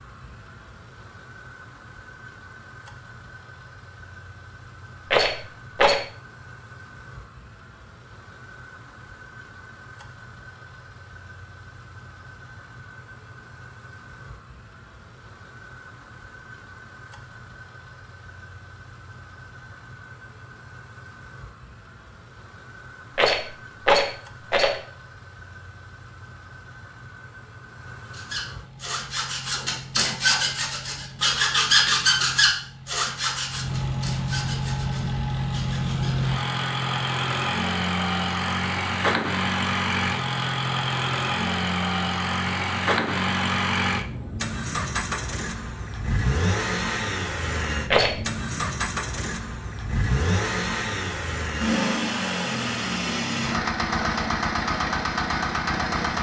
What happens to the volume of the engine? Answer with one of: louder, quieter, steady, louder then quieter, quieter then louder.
louder.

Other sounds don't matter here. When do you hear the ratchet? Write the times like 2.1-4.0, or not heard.
not heard.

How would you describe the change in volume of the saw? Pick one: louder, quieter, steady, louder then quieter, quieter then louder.
louder then quieter.